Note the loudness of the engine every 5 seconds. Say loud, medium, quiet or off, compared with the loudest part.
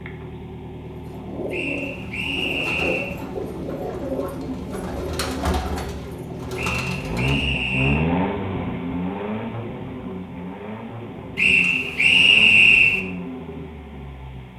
medium, loud, medium.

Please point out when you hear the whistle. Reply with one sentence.
The whistle can be heard from 1.5 to 3.1 s, from 6.5 to 8.1 s and from 11.3 to 13.0 s.